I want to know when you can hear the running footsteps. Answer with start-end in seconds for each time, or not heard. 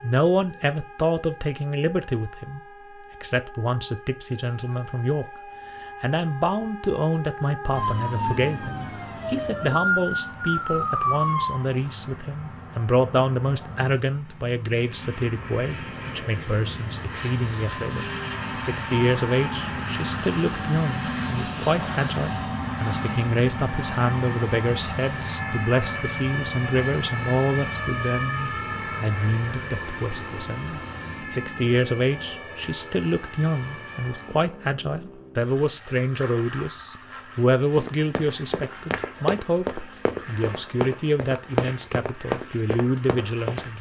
37.8-43.7.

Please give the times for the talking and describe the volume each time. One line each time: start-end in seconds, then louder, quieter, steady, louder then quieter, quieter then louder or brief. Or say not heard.
0.0-2.6 brief
3.2-5.2 brief
6.0-43.7 steady.